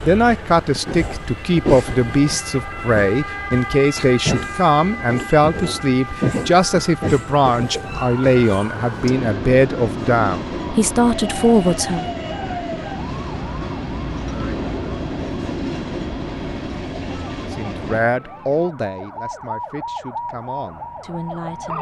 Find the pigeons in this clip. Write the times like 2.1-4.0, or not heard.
not heard.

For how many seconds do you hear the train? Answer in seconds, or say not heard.
18 s.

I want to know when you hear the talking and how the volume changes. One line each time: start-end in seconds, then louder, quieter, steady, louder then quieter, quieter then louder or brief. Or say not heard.
0.0-12.1 steady
17.4-21.7 quieter.